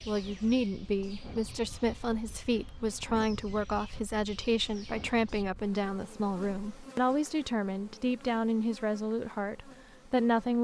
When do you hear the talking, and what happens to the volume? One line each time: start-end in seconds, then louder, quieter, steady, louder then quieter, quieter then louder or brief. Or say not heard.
0.1-10.5 steady.